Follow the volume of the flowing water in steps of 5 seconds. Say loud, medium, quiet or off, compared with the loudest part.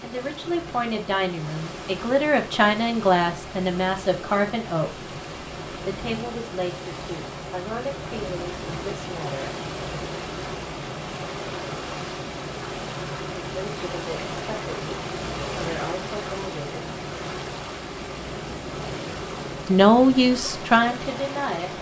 medium, loud, loud, loud, loud.